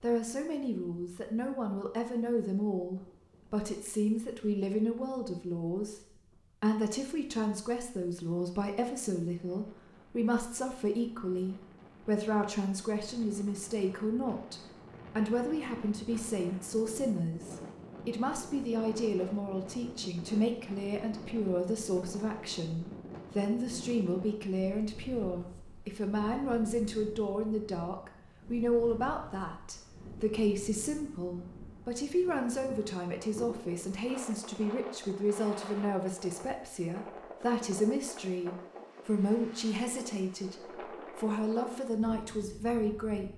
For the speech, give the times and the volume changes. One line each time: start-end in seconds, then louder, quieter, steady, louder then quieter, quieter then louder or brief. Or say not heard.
0.0-43.3 steady.